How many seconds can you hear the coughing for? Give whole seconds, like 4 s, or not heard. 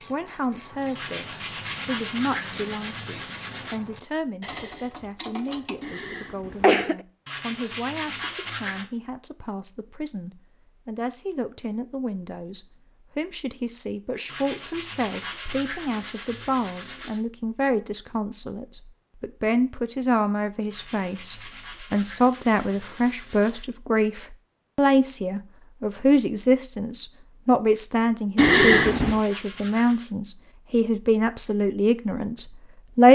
2 s.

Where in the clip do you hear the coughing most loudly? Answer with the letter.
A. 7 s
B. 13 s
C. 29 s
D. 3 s
C.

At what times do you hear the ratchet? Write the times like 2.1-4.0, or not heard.
0.0-5.8.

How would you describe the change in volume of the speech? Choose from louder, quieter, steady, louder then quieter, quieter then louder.
louder.